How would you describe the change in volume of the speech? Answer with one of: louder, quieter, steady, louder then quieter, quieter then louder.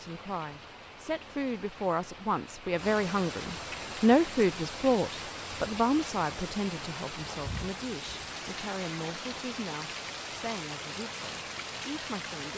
louder then quieter.